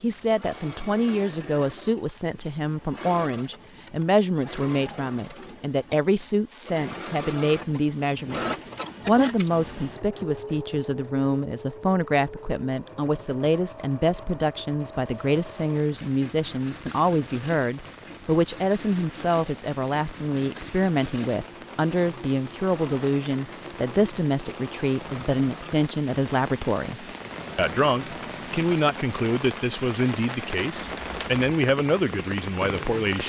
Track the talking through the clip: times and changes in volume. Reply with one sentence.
The talking can be heard from 0.0 to 33.2 s, at a steady volume.